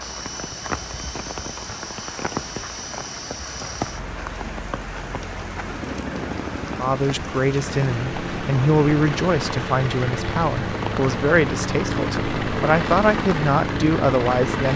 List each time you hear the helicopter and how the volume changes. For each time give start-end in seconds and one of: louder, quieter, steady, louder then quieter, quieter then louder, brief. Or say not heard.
0.0-14.7 louder.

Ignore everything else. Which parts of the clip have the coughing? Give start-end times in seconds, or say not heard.
not heard.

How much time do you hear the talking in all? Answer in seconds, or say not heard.
8 s.